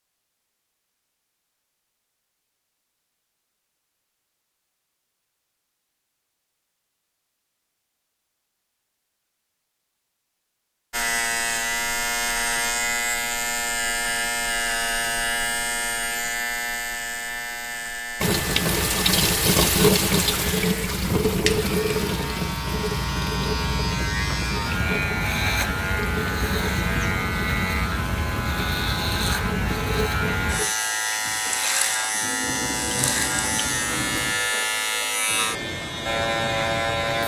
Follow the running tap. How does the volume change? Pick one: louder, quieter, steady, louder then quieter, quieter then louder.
quieter.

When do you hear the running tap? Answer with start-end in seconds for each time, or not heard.
18.2-34.4.